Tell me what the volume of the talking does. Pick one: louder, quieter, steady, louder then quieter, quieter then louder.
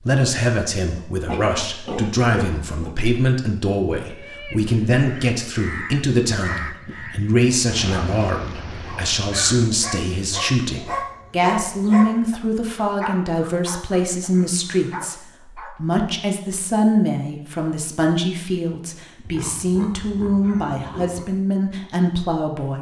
steady.